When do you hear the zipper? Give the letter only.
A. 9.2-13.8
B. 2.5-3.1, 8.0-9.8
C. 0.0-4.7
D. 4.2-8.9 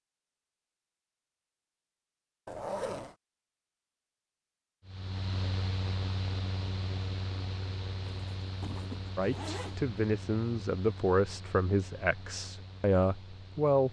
B.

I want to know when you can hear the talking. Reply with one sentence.
The talking can be heard from 9.2 to 13.8 s.